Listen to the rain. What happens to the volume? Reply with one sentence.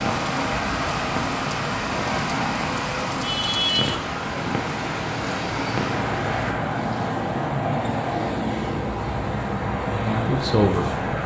The volume of the rain stays about the same.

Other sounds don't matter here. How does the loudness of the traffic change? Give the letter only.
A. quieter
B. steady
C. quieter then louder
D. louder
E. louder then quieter
B.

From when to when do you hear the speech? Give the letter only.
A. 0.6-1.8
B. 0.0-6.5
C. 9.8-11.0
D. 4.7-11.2
C.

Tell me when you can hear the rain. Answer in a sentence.
The rain can be heard from 0.0 to 6.5 s.